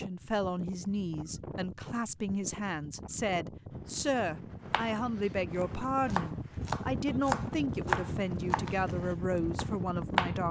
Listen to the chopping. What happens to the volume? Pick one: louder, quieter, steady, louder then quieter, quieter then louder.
louder then quieter.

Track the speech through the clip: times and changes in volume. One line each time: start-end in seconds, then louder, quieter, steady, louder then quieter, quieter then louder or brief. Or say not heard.
0.0-10.4 steady.